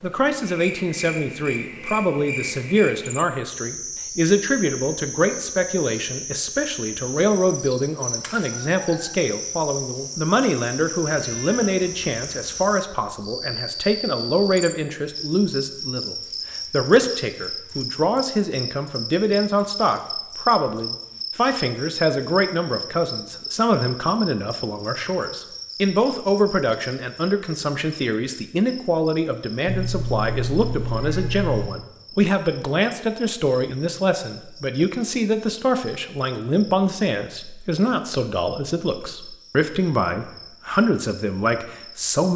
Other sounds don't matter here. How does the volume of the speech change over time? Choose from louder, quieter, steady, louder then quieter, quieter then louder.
steady.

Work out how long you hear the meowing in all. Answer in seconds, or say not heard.
4 s.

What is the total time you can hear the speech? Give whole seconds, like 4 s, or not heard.
42 s.